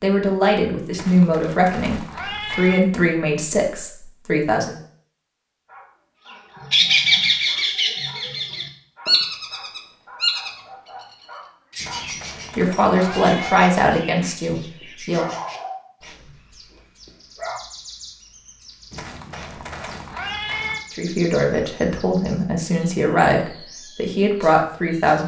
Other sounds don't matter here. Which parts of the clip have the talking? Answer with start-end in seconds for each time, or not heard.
0.0-4.8, 12.6-15.2, 20.9-25.2.